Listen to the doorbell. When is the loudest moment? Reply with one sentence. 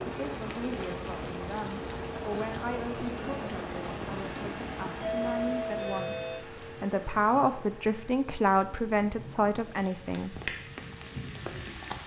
The volume of the doorbell peaks at 5 seconds.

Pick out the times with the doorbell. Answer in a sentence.
The doorbell can be heard from 5.0 to 6.5 s.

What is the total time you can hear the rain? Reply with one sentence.
You can hear the rain for 12 seconds altogether.